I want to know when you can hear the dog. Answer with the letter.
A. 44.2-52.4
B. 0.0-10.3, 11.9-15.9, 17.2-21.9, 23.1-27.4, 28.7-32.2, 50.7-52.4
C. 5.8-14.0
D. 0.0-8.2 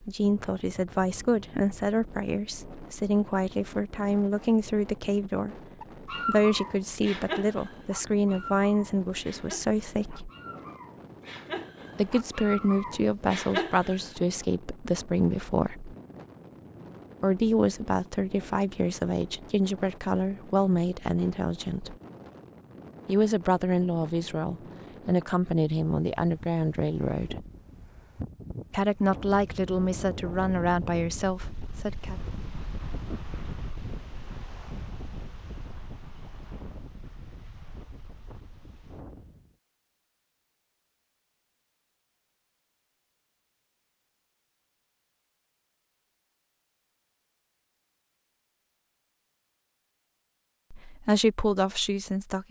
C.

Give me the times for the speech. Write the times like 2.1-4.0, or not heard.
0.0-10.3, 11.9-15.9, 17.2-21.9, 23.1-27.4, 28.7-32.2, 50.7-52.4.